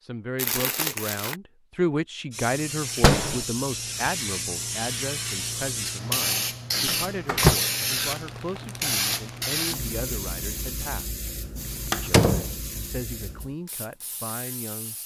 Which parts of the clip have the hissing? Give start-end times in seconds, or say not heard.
2.3-15.0.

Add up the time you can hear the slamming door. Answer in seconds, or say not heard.
2 s.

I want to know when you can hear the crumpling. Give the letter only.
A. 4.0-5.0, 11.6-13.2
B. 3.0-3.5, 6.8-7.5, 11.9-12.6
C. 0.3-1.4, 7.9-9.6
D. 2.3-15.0
C.